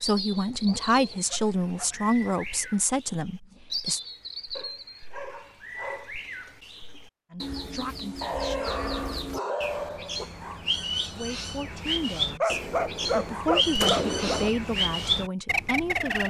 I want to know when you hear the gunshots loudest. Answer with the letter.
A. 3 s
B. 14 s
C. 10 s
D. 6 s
B.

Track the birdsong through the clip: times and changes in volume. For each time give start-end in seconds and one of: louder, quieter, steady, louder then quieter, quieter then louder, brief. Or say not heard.
0.0-16.2 louder.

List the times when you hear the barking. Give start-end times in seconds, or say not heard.
0.5-2.4, 4.5-6.1, 8.2-10.2, 12.4-14.4.